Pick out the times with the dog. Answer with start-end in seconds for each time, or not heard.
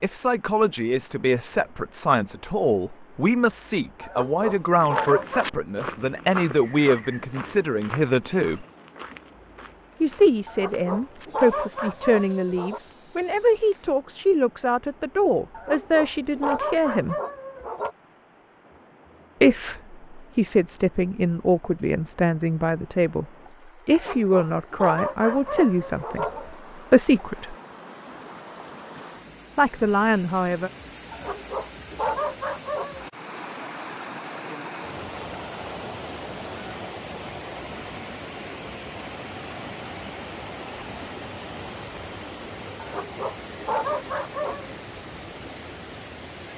4.0-5.5, 10.4-12.8, 15.5-17.9, 23.9-26.6, 31.1-33.0, 42.8-44.8.